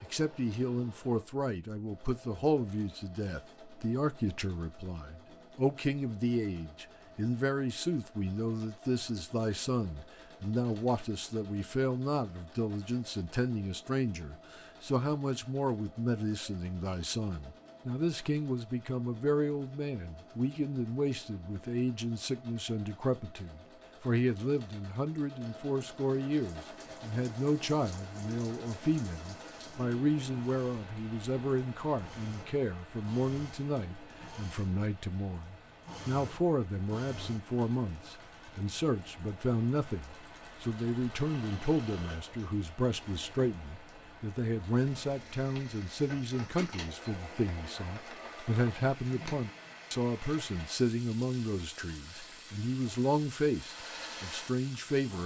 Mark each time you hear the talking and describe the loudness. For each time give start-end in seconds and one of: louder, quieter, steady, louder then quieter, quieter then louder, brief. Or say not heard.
0.0-55.2 steady.